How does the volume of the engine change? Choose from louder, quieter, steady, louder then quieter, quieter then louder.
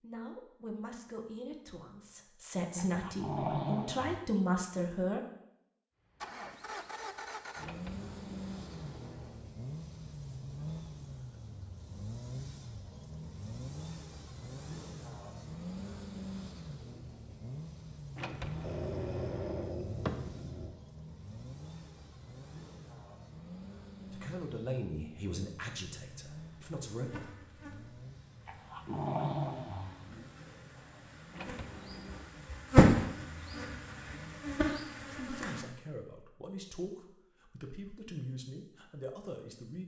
quieter.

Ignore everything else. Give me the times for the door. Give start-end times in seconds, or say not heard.
7.6-9.4, 18.1-19.8, 31.3-32.3.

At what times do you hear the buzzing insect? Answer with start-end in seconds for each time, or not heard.
26.2-35.6.